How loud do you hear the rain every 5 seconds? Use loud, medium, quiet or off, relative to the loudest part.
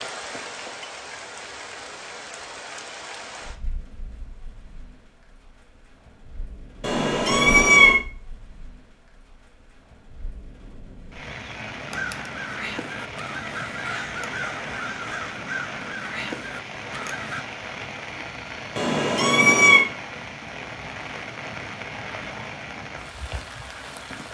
loud, quiet, loud, loud, loud.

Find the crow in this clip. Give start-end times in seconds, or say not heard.
11.8-17.4.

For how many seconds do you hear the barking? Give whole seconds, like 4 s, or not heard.
not heard.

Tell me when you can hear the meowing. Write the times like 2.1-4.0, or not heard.
6.8-8.0, 18.8-19.9.